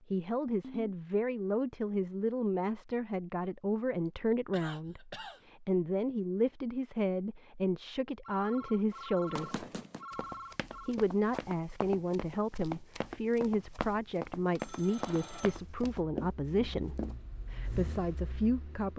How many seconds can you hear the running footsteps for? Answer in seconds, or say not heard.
8 s.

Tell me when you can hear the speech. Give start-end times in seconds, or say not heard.
0.1-9.7, 10.8-18.9.